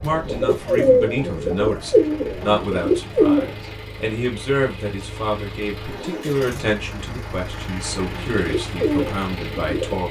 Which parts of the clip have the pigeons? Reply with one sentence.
You can hear the pigeons from 0.0 to 3.7 s and from 7.9 to 10.0 s.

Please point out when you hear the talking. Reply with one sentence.
You can hear the talking from 0.0 to 10.0 s.